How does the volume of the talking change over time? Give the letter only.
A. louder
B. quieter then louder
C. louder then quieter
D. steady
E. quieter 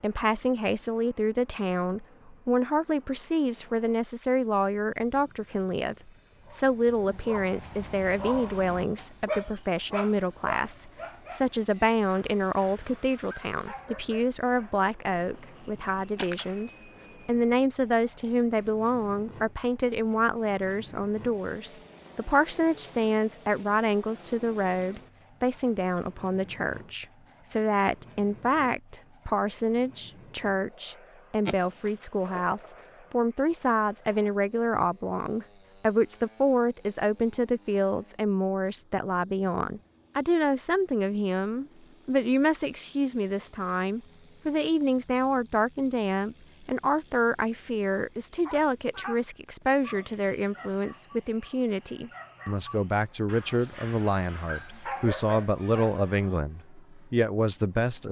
D.